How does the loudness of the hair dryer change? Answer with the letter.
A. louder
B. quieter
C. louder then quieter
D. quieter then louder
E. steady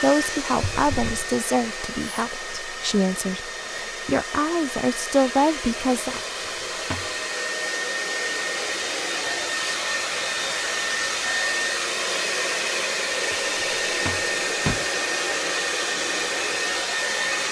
A.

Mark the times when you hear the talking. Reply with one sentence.
You can hear the talking from 0.0 to 6.2 s.